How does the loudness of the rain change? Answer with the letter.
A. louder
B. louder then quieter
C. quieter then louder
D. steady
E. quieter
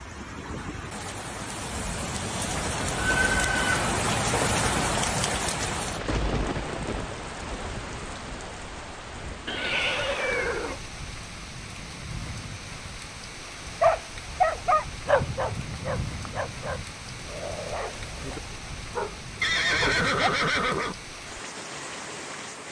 E.